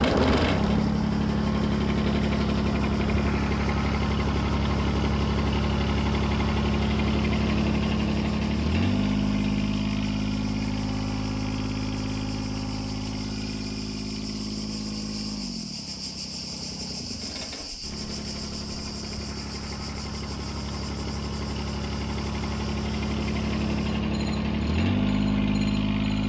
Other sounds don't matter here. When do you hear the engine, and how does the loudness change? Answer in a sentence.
The engine can be heard from 0.0 to 26.2 s, getting quieter then louder.